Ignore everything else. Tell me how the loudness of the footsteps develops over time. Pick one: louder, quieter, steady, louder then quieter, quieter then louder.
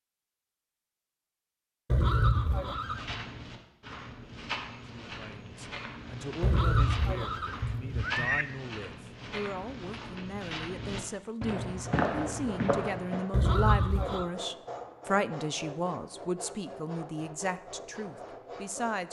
louder.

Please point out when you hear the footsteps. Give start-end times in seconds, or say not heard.
2.6-13.2.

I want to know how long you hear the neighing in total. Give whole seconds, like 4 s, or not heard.
4 s.